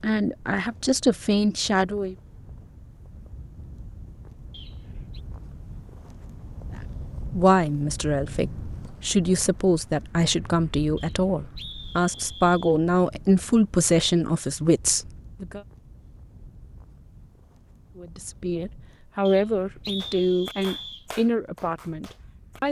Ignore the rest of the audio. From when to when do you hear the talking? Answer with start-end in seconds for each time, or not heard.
0.0-2.1, 7.3-15.6, 17.9-22.6.